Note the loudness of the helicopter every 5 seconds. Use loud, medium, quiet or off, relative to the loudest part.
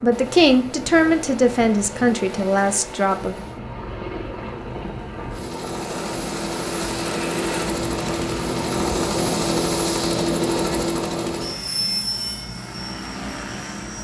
medium, loud, loud.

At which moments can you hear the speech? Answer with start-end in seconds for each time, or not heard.
0.0-3.4.